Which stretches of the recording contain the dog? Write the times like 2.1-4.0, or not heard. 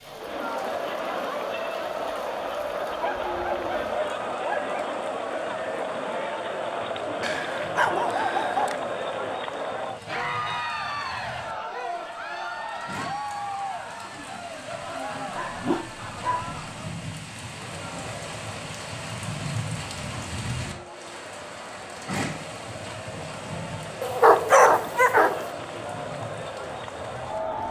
2.8-4.9, 7.2-8.8, 15.3-16.6, 24.0-25.4.